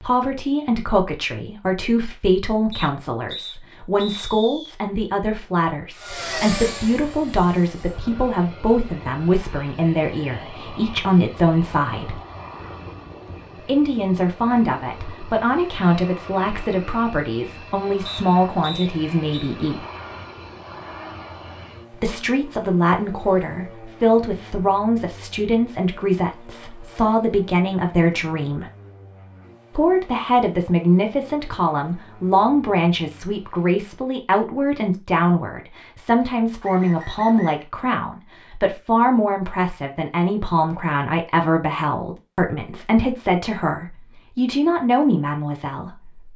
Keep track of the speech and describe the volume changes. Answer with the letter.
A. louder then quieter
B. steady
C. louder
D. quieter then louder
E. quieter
B.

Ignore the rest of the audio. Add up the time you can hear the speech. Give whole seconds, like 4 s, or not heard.
42 s.